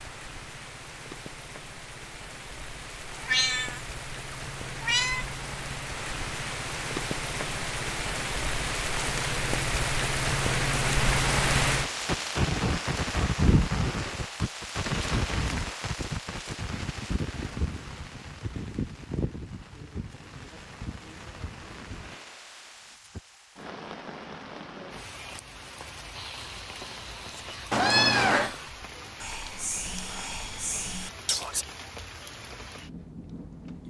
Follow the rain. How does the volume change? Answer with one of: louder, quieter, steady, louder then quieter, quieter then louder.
louder then quieter.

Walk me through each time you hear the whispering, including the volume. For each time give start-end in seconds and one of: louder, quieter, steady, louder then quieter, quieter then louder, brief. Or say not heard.
26.1-31.6 louder.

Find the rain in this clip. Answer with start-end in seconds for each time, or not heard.
0.0-33.8.